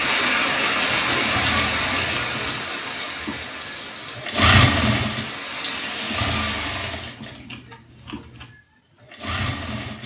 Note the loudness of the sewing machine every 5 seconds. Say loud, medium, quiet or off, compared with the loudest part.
loud, medium.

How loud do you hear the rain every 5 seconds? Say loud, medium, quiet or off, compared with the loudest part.
loud, medium.